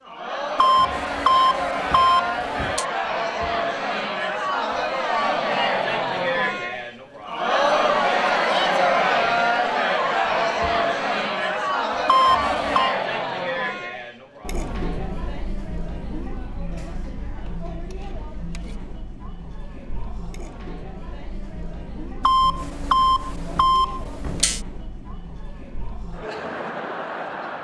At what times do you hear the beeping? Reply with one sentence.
The beeping can be heard from 0.6 to 2.9 s, from 12.1 to 12.9 s and from 22.2 to 24.6 s.